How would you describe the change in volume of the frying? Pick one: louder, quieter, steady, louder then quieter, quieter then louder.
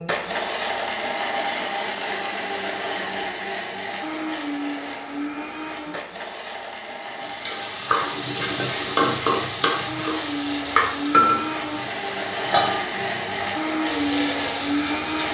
quieter.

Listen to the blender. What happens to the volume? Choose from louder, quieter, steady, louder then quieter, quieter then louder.
quieter then louder.